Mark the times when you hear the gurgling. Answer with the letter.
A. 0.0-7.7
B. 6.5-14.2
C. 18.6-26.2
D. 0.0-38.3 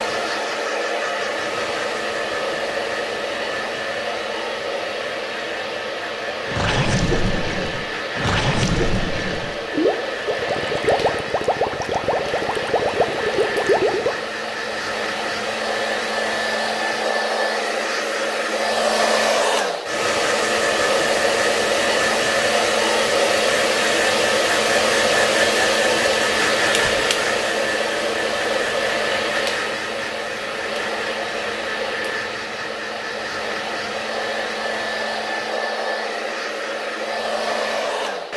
B.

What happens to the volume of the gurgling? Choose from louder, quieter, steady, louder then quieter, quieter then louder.
steady.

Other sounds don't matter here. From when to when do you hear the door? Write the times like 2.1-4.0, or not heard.
not heard.